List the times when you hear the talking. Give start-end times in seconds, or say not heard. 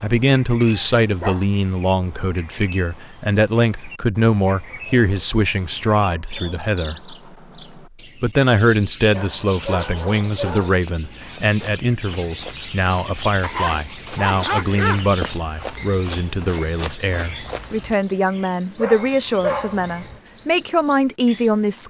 0.0-7.2, 8.2-21.8.